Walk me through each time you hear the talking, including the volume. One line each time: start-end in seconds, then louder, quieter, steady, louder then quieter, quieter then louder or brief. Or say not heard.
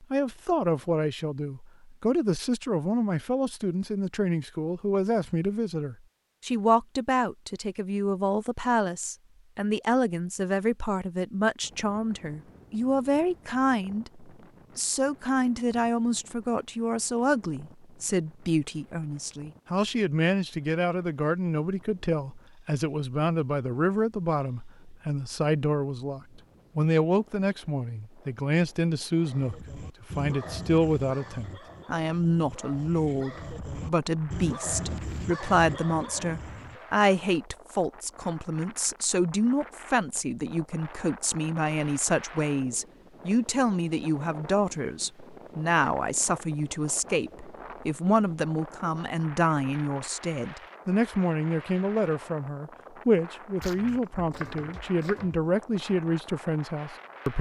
0.0-57.3 steady.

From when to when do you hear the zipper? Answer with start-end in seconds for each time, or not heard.
not heard.